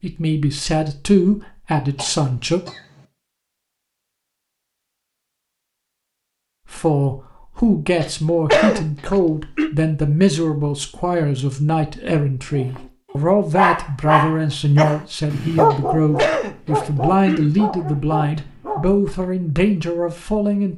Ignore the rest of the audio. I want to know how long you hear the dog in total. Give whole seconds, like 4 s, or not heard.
7 s.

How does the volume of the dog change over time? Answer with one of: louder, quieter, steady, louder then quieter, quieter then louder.
quieter.